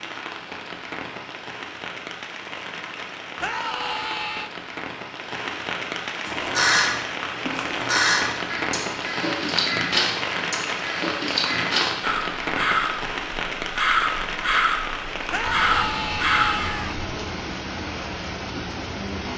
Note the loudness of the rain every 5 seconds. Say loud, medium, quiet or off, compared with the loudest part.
medium, loud, loud, loud.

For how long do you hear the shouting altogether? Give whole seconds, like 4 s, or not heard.
3 s.